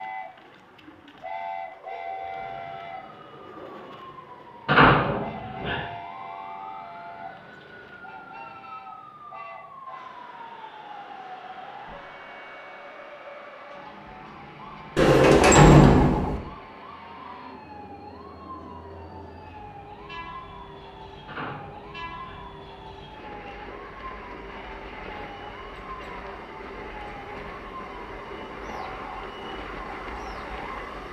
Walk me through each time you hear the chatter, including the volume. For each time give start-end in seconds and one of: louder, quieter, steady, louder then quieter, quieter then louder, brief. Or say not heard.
not heard.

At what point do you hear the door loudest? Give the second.
16 s.